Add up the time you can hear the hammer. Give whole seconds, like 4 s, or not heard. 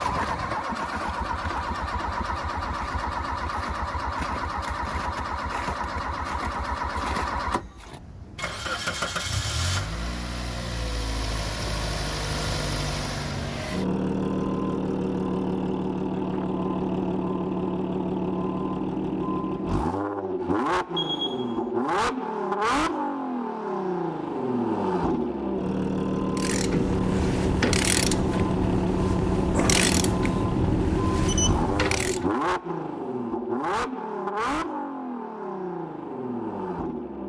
not heard.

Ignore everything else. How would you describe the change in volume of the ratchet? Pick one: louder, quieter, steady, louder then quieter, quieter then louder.
steady.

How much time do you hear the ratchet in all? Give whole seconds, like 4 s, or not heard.
6 s.